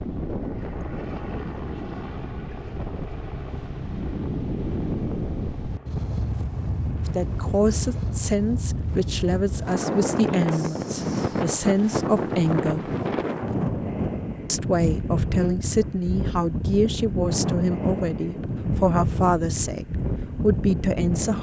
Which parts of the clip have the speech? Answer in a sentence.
The speech can be heard from 7.0 to 12.9 s and from 14.4 to 21.3 s.